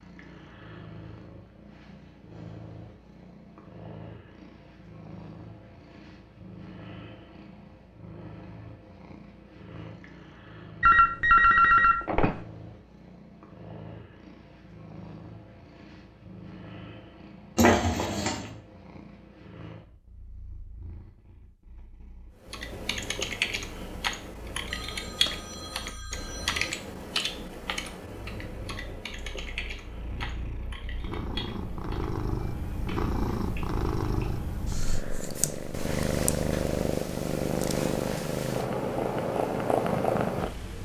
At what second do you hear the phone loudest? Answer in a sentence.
The loudest moment of the phone is at 11 seconds.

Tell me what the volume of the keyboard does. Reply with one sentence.
The volume of the keyboard goes down.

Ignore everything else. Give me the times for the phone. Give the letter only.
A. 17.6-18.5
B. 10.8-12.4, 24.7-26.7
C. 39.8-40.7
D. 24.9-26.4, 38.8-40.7
B.